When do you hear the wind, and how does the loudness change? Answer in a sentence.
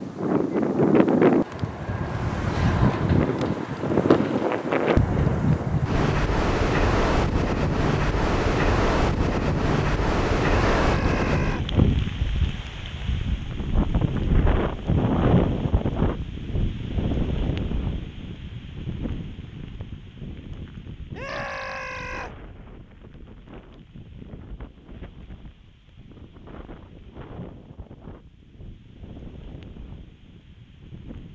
You can hear the wind from 0.0 to 31.3 s, getting quieter.